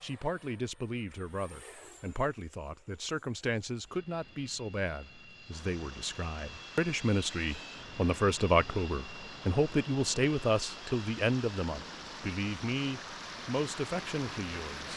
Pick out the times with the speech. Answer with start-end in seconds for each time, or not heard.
0.0-14.9.